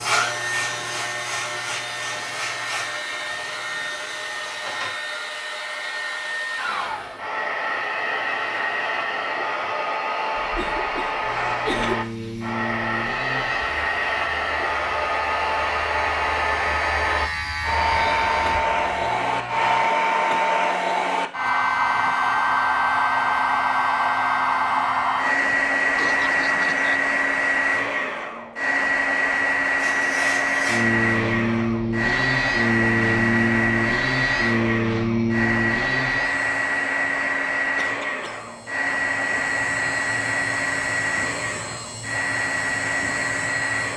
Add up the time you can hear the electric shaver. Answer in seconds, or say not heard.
28 s.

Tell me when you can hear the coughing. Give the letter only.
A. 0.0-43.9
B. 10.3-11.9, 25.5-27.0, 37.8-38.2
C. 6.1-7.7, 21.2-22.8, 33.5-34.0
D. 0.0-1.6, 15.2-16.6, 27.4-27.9
B.